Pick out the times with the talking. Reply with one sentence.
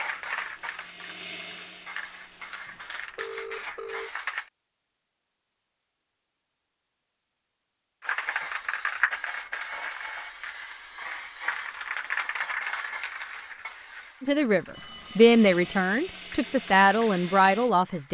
The talking can be heard from 14.2 to 18.0 s.